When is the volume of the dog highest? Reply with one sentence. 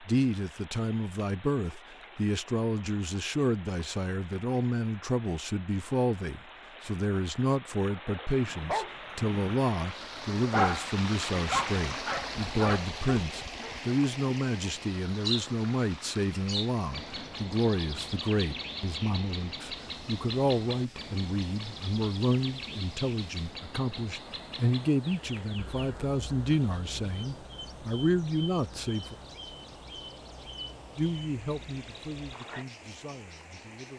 The volume of the dog peaks at 11 seconds.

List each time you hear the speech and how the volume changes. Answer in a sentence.
The speech can be heard from 0.0 to 29.1 s, at a steady volume; and briefly from 30.9 to 33.9 s.